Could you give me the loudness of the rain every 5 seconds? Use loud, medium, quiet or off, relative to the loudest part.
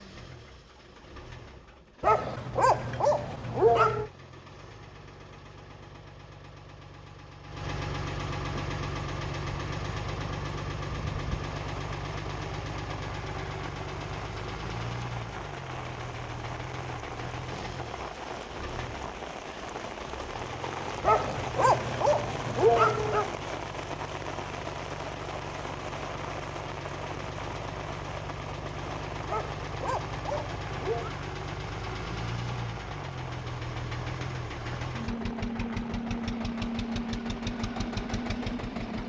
off, off, medium, loud, loud, loud, medium, medium.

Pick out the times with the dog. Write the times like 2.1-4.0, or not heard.
2.0-4.1, 21.0-23.3, 29.2-31.1.